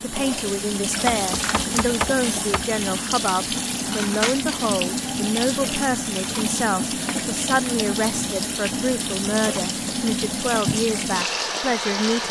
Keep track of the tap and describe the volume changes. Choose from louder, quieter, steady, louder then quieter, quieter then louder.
steady.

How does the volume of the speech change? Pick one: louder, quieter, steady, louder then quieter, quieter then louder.
steady.